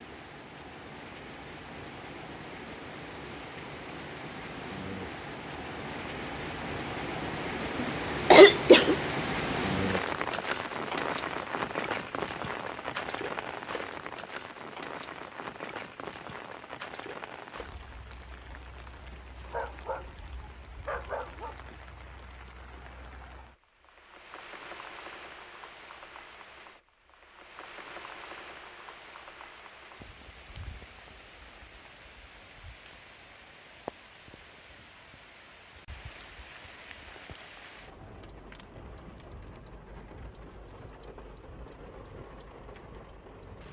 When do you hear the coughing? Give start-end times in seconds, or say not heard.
7.8-8.9.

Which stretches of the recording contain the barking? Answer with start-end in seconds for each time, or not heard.
19.4-21.6.